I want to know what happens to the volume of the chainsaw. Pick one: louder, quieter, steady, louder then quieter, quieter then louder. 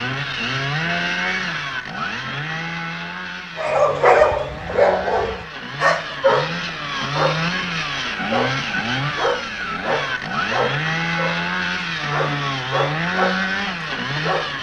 quieter then louder.